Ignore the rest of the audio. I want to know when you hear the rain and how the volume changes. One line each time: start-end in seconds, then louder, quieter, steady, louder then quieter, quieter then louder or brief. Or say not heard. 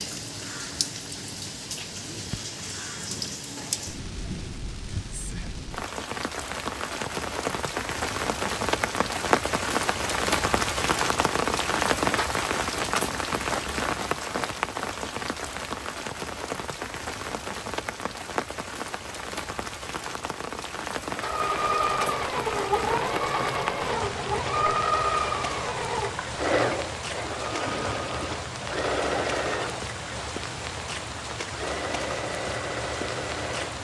0.0-33.7 louder then quieter.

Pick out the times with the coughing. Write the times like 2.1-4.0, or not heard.
not heard.